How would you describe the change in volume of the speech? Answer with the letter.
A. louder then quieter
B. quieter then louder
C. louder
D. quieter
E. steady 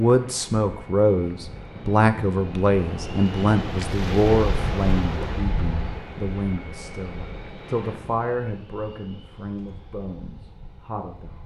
D.